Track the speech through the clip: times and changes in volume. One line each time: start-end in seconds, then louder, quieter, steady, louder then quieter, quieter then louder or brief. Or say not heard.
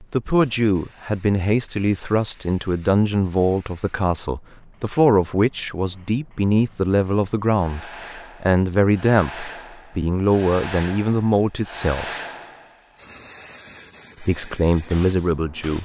0.0-12.2 steady
14.2-15.8 brief.